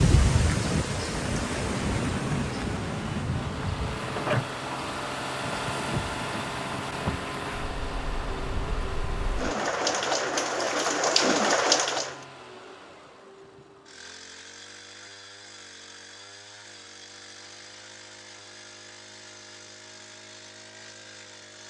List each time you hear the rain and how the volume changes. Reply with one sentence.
The rain can be heard from 0.0 to 12.2 s, getting quieter then louder.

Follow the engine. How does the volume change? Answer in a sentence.
The volume of the engine goes down.